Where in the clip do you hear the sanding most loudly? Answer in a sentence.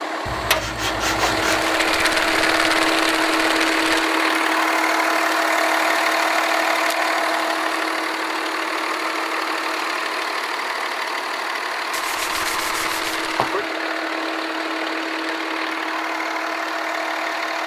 The loudest moment of the sanding is at 1 second.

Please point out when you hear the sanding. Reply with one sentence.
You can hear the sanding from 0.2 to 1.8 s and from 11.9 to 13.6 s.